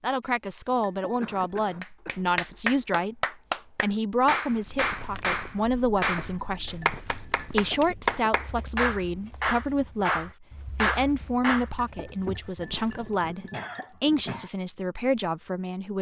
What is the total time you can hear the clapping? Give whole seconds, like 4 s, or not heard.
10 s.